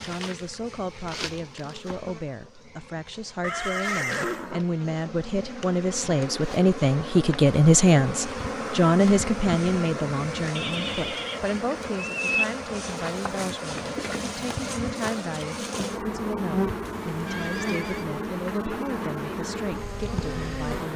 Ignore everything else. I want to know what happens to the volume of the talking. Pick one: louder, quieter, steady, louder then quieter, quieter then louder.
louder then quieter.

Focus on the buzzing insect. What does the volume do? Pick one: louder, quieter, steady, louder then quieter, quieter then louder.
louder.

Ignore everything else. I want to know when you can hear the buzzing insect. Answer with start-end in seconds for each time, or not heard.
0.0-20.9.